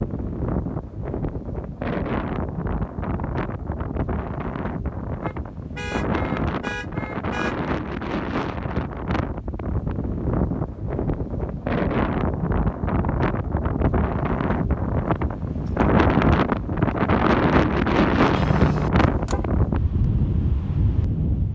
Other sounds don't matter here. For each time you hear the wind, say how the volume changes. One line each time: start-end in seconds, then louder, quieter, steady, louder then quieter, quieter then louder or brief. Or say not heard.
0.0-21.5 louder.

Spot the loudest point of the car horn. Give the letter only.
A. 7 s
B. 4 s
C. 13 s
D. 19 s
D.